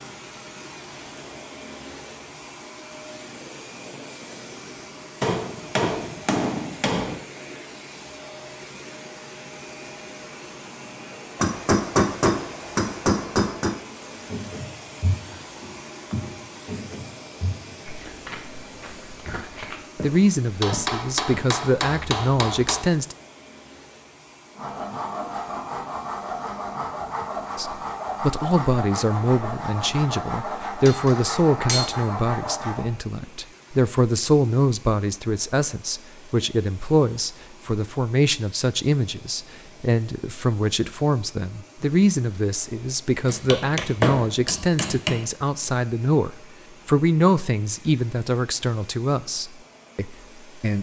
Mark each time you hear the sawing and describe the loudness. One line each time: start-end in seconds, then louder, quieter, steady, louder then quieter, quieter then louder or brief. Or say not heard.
24.6-32.9 steady.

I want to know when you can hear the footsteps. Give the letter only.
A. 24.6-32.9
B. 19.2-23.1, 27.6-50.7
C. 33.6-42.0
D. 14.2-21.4
D.